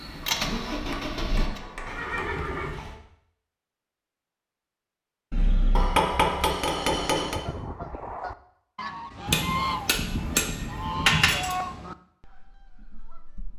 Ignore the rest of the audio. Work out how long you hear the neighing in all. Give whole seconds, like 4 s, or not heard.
4 s.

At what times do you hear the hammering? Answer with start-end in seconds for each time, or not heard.
0.2-2.2, 5.8-7.4, 9.2-11.6.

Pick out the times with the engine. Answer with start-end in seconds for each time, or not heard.
0.0-2.0.